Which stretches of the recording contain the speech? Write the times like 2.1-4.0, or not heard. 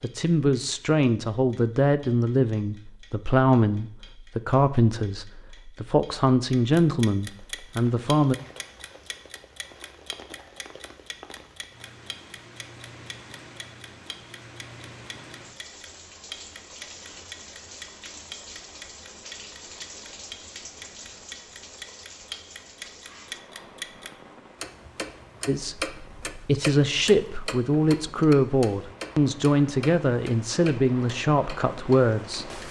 0.0-8.3, 25.4-32.6.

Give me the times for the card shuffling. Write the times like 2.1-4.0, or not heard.
not heard.